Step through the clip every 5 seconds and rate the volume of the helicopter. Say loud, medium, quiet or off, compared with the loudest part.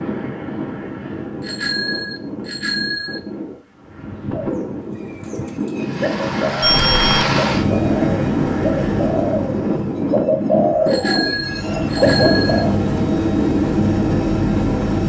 off, loud, loud.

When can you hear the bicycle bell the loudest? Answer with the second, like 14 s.
7 s.